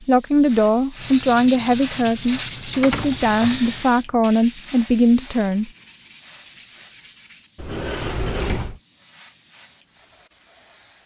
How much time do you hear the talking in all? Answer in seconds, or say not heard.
6 s.